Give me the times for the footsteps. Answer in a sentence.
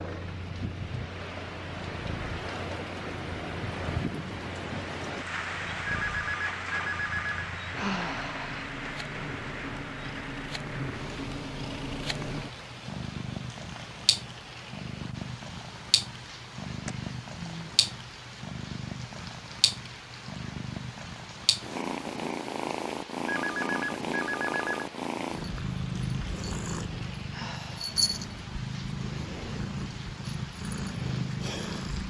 The footsteps can't be heard in this clip.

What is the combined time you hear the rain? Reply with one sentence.
The rain can be heard for 32 seconds in total.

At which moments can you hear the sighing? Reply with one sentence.
You can hear the sighing from 7.8 to 8.7 s, from 16.9 to 17.8 s and from 27.3 to 27.9 s.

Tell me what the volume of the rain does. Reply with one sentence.
The volume of the rain goes down.